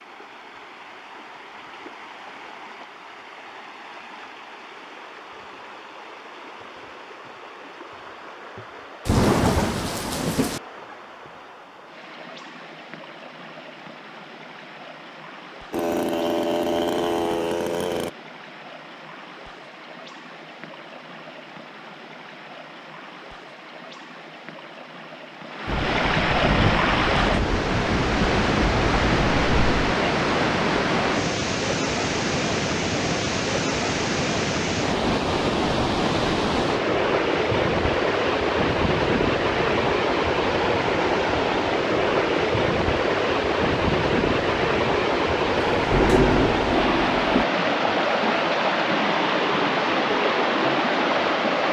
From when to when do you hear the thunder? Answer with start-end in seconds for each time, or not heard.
9.1-10.6, 25.6-29.9, 45.8-47.5.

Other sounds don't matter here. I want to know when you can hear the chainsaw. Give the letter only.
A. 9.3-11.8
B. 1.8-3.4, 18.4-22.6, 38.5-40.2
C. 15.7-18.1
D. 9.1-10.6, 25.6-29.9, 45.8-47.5
C.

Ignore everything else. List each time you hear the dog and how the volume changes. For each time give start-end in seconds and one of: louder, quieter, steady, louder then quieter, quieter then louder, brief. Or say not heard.
not heard.